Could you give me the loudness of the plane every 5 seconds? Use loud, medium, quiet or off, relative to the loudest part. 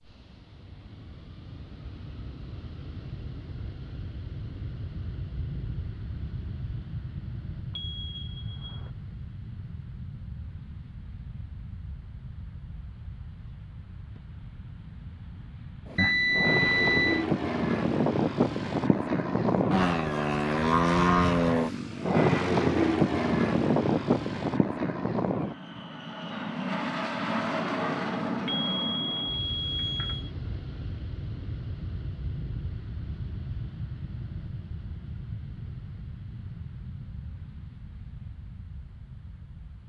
quiet, quiet, quiet, loud, loud, medium, quiet, quiet.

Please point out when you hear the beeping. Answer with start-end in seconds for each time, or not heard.
7.8-8.9, 15.9-17.2, 28.4-30.3.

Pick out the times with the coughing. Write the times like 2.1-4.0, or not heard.
not heard.